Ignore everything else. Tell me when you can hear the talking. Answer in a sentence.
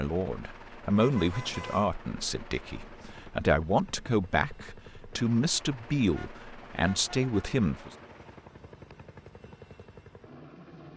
You can hear the talking from 0.0 to 7.9 s.